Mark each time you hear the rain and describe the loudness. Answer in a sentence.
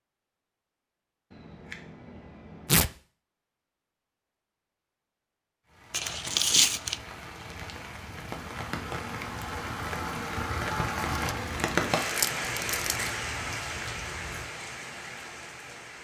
You can hear the rain from 5.7 to 15.9 s, getting louder then quieter.